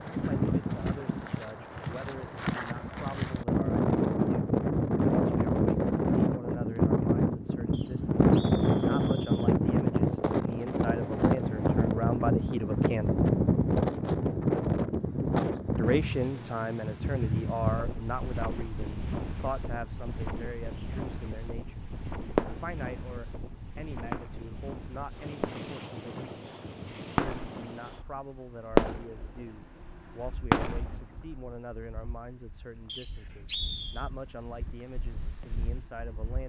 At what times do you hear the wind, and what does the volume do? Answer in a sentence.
You can hear the wind from 0.0 to 36.4 s, getting quieter.